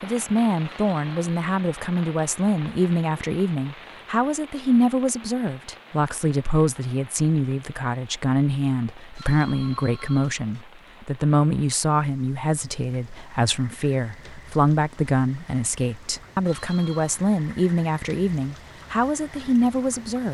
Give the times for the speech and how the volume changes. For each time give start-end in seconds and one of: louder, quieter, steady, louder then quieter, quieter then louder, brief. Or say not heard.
0.0-20.2 steady.